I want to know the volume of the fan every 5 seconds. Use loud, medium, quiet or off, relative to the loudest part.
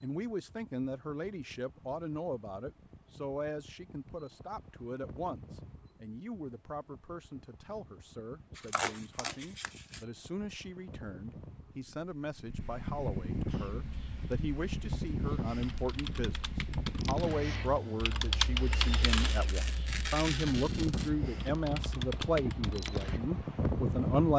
quiet, quiet, medium, loud, loud.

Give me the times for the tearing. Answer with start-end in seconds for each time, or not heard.
8.6-10.1, 19.0-21.1.